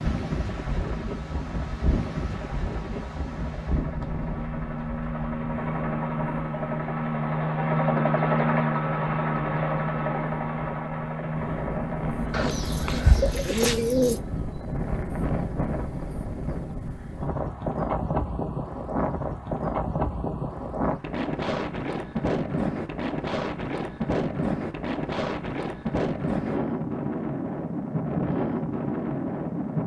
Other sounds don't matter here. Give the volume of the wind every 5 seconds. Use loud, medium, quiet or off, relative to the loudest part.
medium, medium, medium, loud, loud, loud.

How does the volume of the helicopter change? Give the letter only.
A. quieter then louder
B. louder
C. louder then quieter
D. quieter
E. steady
C.